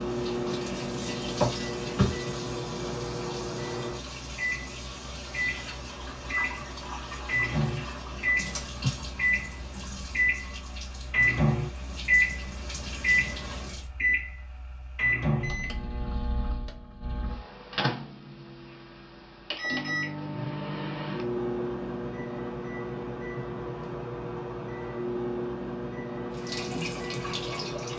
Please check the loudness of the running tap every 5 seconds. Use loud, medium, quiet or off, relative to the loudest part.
loud, loud, medium, off, off, loud.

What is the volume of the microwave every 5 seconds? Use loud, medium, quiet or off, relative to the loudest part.
medium, loud, loud, medium, medium, medium.